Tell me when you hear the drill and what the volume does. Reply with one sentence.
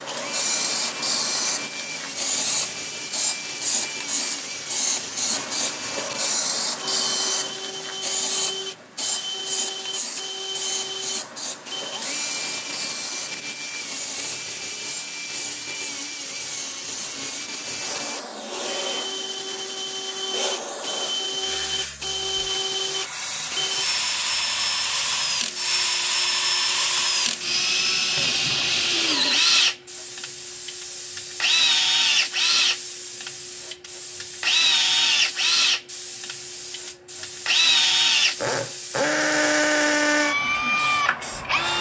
You can hear the drill from 0.0 to 41.7 s, getting louder.